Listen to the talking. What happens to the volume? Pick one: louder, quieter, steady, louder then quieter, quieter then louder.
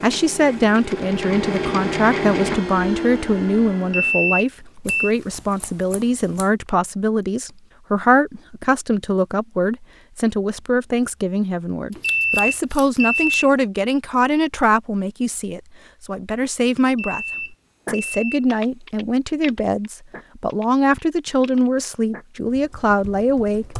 steady.